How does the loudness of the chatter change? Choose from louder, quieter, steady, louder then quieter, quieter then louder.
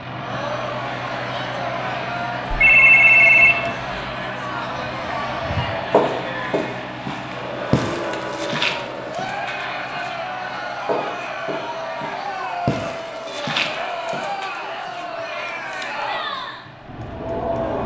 steady.